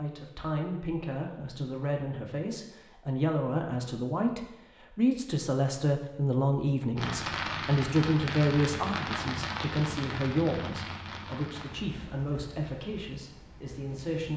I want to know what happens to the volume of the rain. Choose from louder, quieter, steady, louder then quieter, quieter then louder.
quieter.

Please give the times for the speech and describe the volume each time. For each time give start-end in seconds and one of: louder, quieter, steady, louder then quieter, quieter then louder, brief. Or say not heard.
0.0-14.3 louder then quieter.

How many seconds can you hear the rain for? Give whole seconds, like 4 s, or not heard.
7 s.